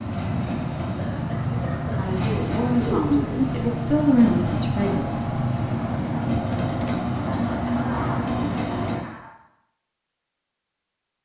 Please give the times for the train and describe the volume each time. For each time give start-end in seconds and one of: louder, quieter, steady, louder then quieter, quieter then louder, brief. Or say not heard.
0.0-9.0 steady.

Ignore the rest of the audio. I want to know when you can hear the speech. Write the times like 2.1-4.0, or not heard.
1.9-5.5.